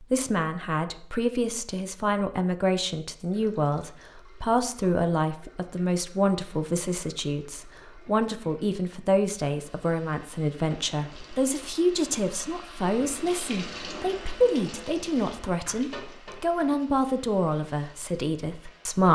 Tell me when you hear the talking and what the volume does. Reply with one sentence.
The talking can be heard from 0.0 to 19.0 s, at a steady volume.